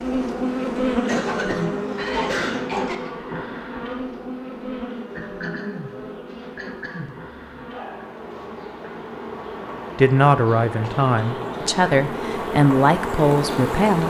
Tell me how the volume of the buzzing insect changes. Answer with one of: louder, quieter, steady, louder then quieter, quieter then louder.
quieter then louder.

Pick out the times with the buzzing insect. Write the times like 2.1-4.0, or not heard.
0.0-14.0.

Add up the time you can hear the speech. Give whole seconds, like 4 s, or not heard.
4 s.